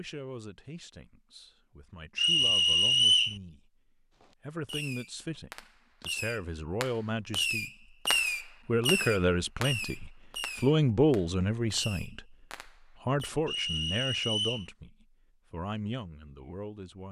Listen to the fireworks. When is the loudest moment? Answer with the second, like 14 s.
8 s.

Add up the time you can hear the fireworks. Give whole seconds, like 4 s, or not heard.
9 s.